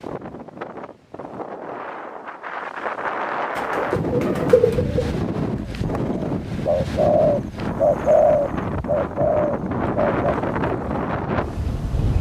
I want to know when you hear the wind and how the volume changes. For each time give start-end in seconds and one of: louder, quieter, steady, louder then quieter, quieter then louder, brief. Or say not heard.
0.0-12.1 louder.